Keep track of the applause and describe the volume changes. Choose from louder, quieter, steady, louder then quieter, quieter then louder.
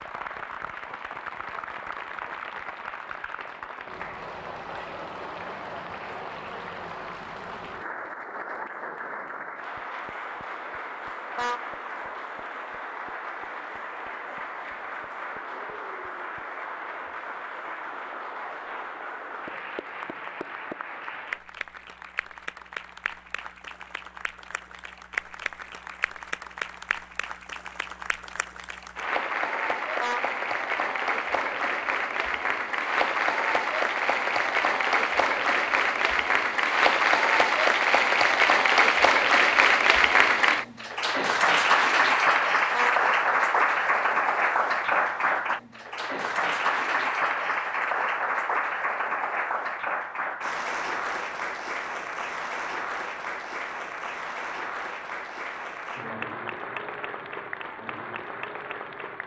louder then quieter.